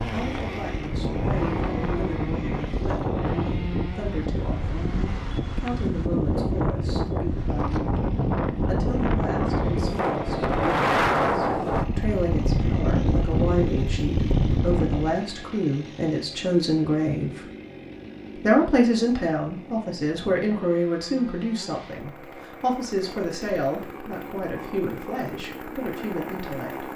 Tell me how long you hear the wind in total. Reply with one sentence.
The wind can be heard for 15 seconds in total.